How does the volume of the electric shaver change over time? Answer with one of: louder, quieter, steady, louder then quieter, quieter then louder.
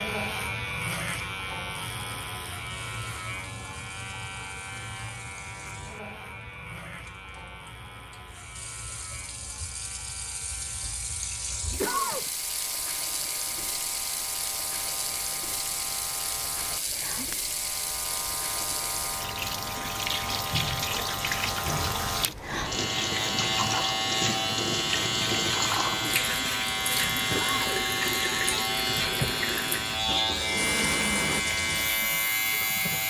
quieter then louder.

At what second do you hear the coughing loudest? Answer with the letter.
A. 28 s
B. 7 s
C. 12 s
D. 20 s
C.